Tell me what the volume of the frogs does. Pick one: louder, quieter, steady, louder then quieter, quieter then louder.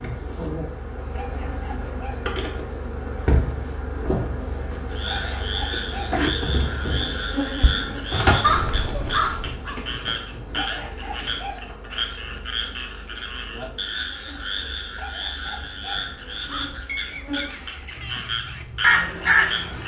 steady.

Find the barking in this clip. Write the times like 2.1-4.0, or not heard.
1.1-2.3, 5.0-6.2, 10.6-11.7, 14.9-16.1.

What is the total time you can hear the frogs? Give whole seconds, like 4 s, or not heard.
15 s.